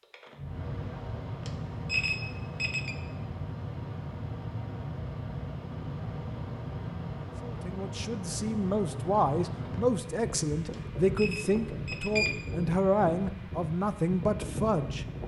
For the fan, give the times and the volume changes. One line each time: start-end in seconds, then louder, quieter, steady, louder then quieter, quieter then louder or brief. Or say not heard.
0.0-15.2 steady.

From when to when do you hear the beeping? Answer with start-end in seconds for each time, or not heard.
1.4-3.0, 10.7-12.4.